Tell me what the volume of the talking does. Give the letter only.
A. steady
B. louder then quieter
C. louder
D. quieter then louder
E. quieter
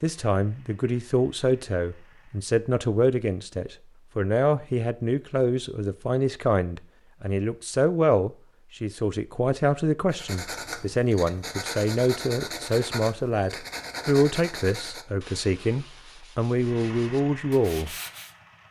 A.